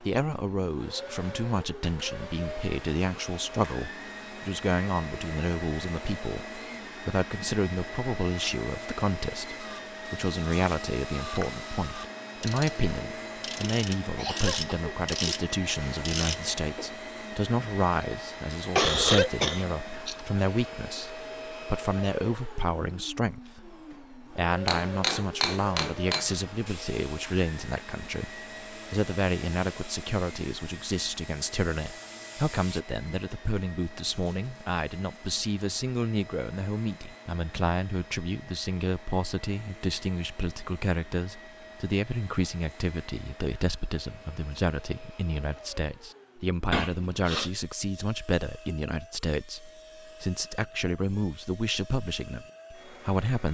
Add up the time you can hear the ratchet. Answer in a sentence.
You can hear the ratchet for 14 seconds altogether.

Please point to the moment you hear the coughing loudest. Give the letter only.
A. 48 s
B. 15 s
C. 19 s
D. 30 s
C.